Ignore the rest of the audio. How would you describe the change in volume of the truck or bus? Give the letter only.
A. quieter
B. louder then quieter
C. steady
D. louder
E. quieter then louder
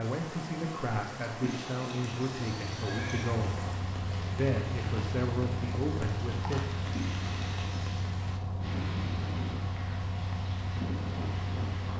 C.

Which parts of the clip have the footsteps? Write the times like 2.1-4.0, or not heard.
not heard.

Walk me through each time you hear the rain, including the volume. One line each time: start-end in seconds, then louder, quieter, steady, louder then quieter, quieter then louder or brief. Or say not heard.
0.0-11.9 steady.